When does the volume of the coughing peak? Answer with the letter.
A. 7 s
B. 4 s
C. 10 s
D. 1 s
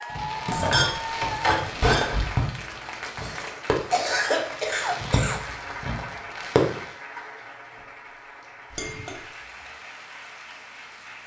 B.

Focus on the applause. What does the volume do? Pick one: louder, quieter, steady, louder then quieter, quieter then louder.
quieter.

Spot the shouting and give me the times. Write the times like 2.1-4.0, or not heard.
not heard.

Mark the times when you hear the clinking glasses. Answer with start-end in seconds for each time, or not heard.
0.5-2.4, 8.7-9.2.